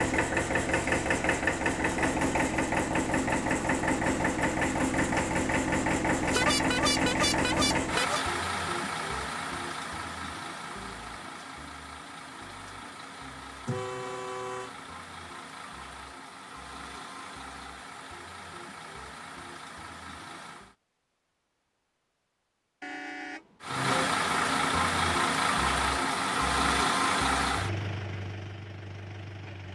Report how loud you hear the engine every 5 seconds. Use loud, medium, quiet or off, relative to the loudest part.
loud, loud, quiet, quiet, loud, loud.